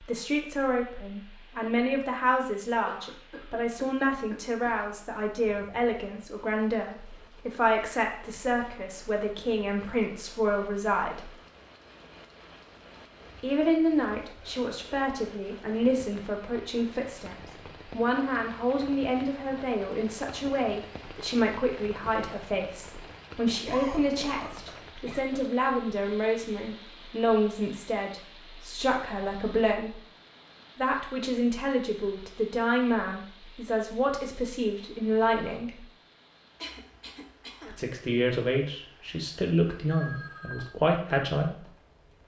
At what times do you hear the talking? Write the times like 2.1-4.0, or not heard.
0.0-11.3, 13.4-29.9, 30.8-35.9, 37.6-41.6.